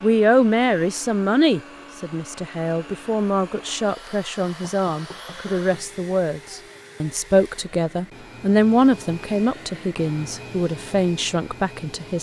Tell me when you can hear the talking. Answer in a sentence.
You can hear the talking from 0.0 to 12.1 s.